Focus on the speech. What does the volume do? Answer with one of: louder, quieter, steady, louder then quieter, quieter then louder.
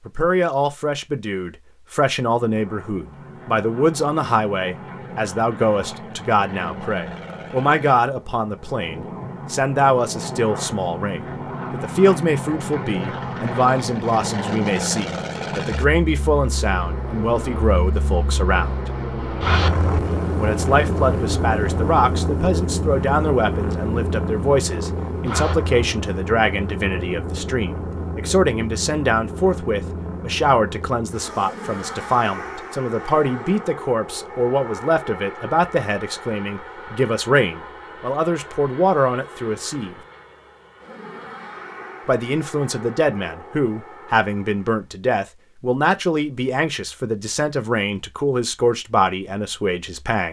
steady.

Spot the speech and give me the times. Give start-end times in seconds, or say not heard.
0.1-18.9, 20.4-40.0, 42.0-50.2.